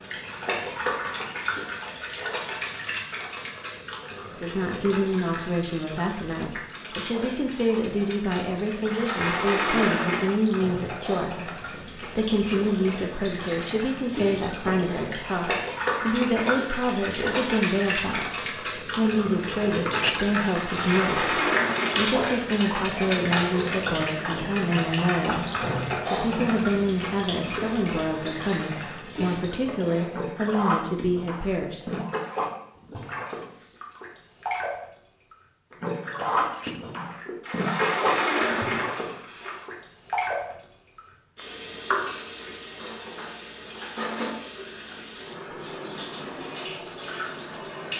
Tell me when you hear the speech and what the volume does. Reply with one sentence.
You can hear the speech from 4.2 to 31.9 s, at a steady volume.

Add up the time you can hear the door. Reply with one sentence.
The door can be heard for 5 seconds in total.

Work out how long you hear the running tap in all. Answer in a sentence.
The running tap can be heard for 48 seconds in total.